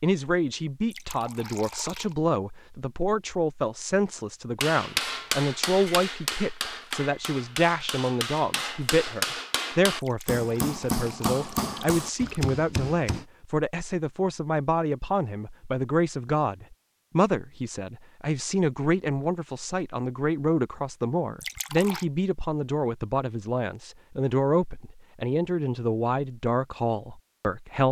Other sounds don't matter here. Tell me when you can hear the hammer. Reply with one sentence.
You can hear the hammer from 4.6 to 13.2 s.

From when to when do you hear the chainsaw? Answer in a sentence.
The chainsaw can't be heard in this clip.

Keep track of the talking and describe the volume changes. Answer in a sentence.
The volume of the talking stays about the same.